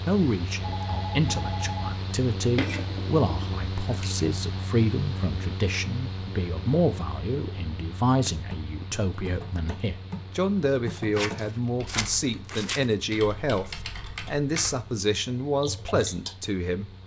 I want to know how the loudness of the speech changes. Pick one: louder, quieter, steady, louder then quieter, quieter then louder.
steady.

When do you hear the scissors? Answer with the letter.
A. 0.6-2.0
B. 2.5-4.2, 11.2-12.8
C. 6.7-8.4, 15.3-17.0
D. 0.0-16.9
B.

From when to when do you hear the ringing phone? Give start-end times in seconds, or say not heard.
0.6-2.0.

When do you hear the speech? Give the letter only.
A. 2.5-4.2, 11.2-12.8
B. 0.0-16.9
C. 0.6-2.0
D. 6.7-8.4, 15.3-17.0
B.